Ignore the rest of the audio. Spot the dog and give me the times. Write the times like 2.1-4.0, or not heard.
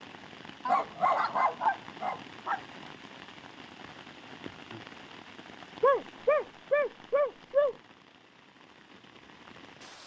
0.7-2.6, 5.8-7.8.